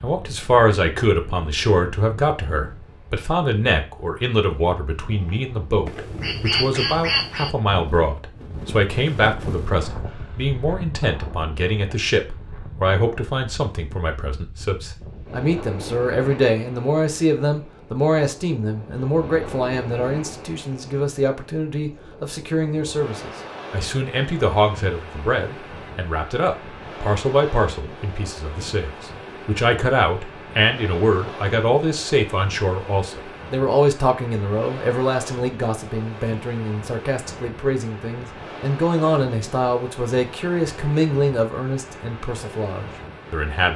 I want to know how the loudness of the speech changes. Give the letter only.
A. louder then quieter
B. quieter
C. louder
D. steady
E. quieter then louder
D.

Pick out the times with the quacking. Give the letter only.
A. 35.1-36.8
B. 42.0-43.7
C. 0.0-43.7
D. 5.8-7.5
D.